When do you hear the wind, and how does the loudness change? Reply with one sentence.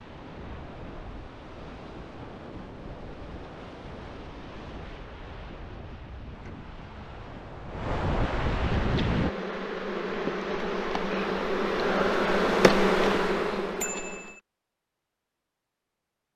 The wind can be heard from 0.0 to 9.3 s, getting louder.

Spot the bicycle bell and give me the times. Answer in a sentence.
You can hear the bicycle bell from 13.8 to 14.4 s.